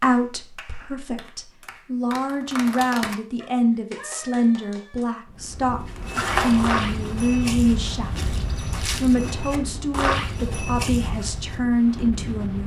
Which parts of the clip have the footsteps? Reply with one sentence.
You can hear the footsteps from 5.8 to 11.6 s.